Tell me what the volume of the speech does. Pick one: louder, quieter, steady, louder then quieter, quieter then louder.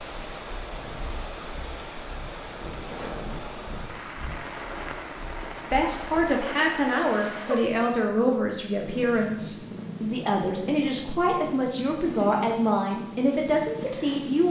steady.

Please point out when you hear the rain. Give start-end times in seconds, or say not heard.
0.0-7.8.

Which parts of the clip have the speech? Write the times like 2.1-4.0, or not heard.
5.7-14.4.